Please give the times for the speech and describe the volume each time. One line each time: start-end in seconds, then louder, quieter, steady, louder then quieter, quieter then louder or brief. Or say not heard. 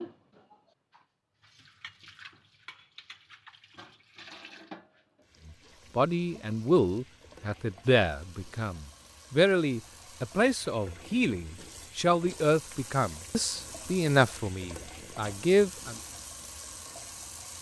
6.0-15.9 steady.